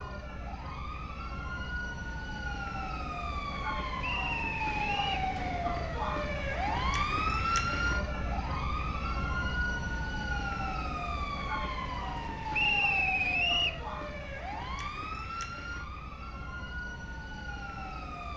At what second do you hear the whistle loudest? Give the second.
13 s.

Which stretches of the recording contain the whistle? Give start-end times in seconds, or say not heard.
4.0-5.2, 12.5-13.8.